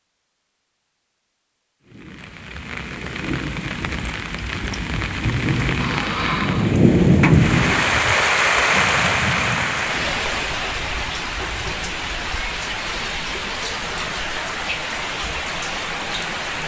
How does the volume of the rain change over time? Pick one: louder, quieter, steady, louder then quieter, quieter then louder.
louder then quieter.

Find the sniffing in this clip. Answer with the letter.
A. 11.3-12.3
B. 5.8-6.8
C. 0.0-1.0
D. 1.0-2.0
B.